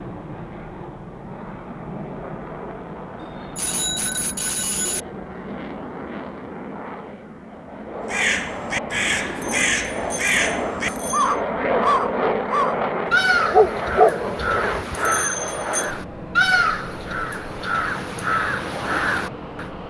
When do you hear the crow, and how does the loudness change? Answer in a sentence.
You can hear the crow from 8.1 to 19.7 s, at a steady volume.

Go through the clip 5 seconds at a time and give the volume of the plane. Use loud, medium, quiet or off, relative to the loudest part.
medium, medium, loud, medium.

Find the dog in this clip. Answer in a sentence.
The dog can be heard from 13.1 to 14.8 s.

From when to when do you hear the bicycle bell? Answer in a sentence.
The bicycle bell can be heard from 3.2 to 5.0 s, from 9.3 to 11.3 s and from 14.9 to 15.9 s.